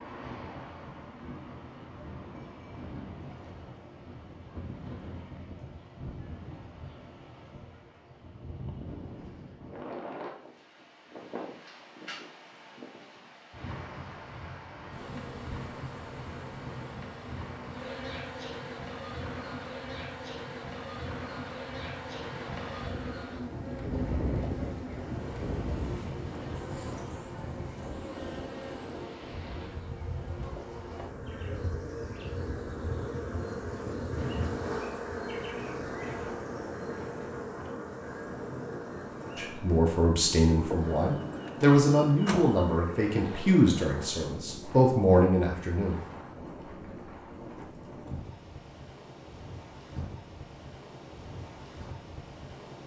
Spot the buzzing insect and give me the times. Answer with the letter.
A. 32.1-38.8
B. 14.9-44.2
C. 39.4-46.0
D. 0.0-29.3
B.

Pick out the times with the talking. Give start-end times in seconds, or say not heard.
39.4-46.0.